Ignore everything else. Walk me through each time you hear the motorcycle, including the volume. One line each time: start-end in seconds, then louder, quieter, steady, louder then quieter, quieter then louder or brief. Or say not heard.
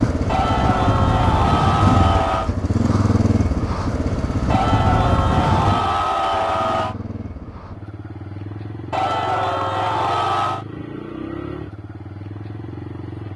0.0-13.3 quieter.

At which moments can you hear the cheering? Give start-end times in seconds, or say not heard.
0.2-2.5, 4.5-7.0, 8.9-10.7.